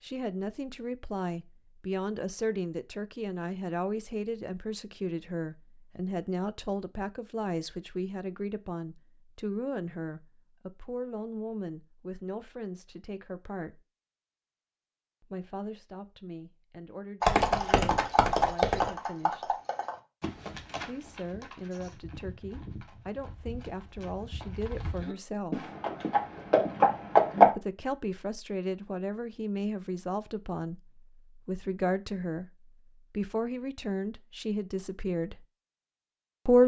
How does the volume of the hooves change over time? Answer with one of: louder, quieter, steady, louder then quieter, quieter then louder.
quieter then louder.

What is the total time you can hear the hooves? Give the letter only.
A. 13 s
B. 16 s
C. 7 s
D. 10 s
D.